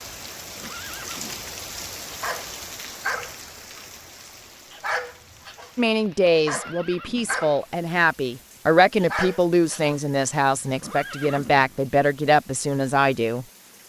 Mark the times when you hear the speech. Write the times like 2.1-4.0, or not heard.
5.8-13.8.